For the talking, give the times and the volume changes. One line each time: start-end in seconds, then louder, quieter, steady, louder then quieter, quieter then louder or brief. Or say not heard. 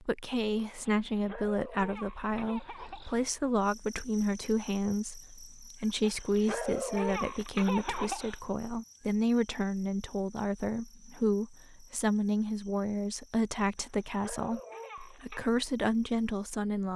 0.0-16.9 steady.